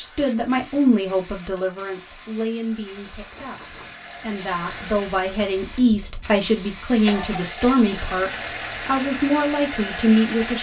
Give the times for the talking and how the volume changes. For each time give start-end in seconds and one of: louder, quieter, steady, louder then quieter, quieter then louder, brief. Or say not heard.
0.0-10.5 quieter then louder.